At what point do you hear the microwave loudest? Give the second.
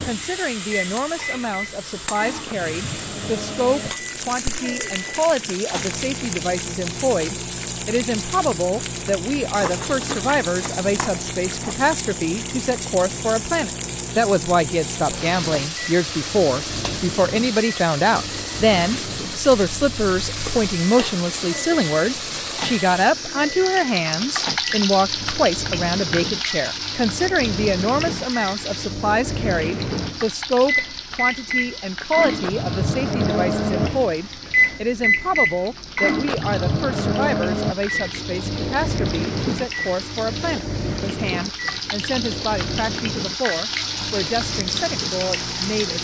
35 s.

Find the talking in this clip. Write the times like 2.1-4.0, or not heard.
0.0-46.0.